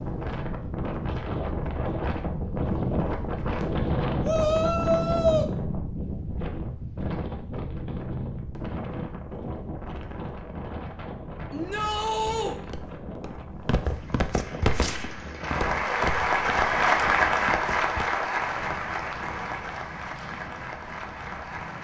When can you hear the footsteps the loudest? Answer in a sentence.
The loudest moment of the footsteps is at 15 seconds.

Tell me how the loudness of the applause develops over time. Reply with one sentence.
The loudness of the applause goes up, then down.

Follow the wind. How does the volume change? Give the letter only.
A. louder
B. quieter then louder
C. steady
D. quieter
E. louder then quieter
D.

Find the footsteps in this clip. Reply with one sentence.
The footsteps can be heard from 12.5 to 18.1 s.